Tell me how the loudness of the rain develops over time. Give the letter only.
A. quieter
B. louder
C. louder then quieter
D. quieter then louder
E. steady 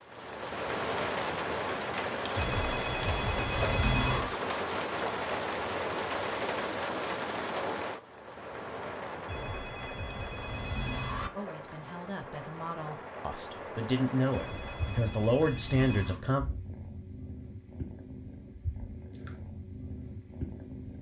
A.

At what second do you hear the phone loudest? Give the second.
4 s.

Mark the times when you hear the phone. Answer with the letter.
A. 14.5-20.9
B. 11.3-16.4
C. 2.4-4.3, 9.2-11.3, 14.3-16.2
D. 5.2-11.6
C.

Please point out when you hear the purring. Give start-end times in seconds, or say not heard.
14.5-20.9.